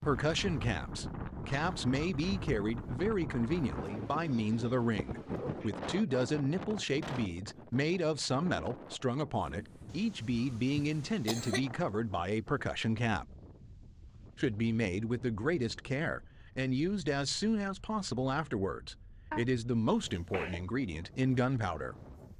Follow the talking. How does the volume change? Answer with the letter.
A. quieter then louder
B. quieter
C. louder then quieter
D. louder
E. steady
E.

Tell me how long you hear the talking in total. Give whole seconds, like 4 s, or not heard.
21 s.